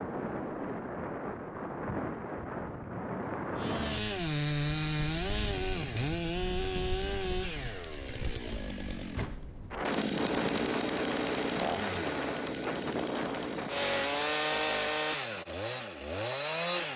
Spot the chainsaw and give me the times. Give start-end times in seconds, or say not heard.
3.5-16.9.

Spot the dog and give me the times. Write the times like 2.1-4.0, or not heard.
not heard.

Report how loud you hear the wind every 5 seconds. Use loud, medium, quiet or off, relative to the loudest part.
loud, medium, loud, off.